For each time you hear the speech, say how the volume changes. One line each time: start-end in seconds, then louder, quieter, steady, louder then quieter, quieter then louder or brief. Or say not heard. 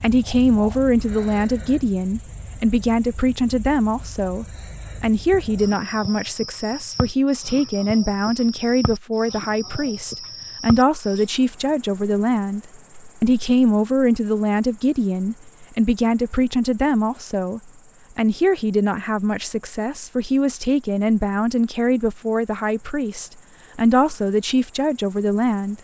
0.0-12.6 steady
13.2-25.8 steady.